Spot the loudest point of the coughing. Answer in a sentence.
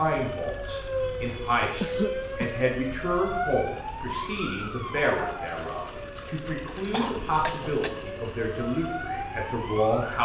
The volume of the coughing peaks at 2 seconds.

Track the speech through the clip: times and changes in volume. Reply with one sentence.
You can hear the speech from 0.0 to 10.2 s, at a steady volume.